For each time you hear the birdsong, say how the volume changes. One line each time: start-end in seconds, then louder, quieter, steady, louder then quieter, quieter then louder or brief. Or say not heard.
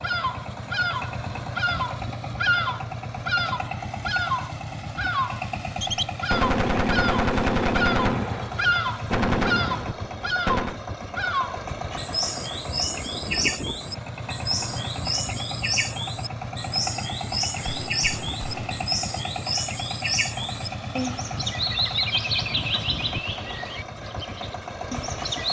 0.0-25.4 steady.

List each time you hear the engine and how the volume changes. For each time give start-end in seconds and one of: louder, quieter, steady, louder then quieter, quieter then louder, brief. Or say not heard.
0.0-25.4 steady.